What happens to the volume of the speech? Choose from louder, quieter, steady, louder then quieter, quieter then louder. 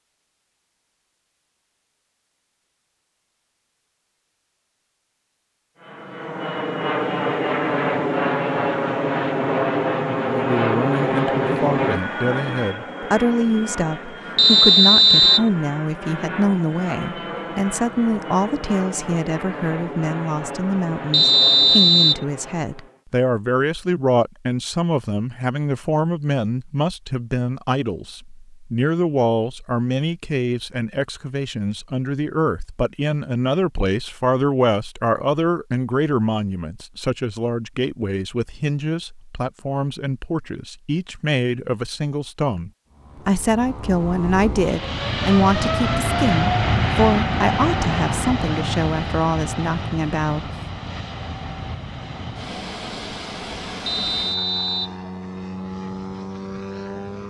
steady.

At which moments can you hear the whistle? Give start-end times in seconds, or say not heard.
14.3-15.5, 21.1-22.2, 53.9-55.0.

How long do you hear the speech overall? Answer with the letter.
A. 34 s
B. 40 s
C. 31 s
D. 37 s
B.